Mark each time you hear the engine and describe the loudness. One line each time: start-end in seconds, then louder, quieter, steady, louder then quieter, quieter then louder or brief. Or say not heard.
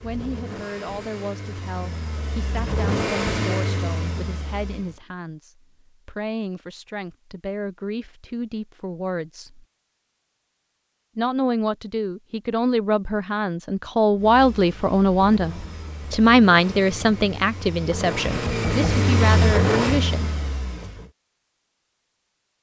0.0-5.0 louder then quieter
14.2-21.1 louder.